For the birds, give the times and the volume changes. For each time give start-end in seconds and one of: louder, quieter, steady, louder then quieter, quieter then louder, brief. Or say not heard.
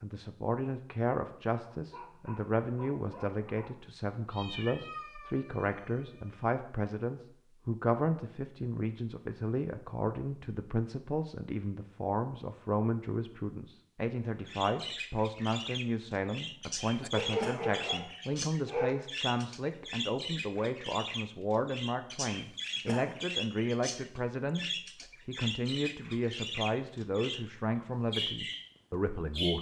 14.4-27.4 steady
28.1-29.5 brief.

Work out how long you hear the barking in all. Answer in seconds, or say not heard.
4 s.